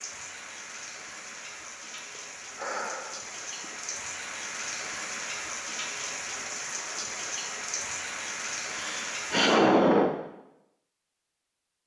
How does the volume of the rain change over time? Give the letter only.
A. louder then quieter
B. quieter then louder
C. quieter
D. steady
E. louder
E.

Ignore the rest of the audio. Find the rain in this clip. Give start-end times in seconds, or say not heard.
0.0-9.6.